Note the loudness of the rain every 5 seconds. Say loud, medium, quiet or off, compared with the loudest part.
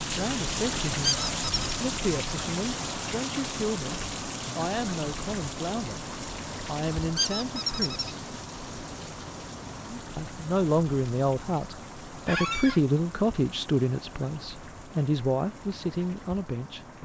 loud, medium, medium, quiet.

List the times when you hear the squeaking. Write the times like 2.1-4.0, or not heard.
1.0-1.7, 7.2-8.2, 12.2-12.8.